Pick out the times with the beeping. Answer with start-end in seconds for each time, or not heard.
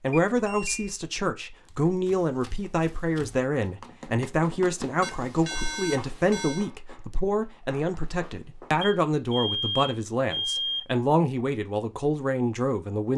0.1-0.9, 5.0-6.7, 8.8-10.8.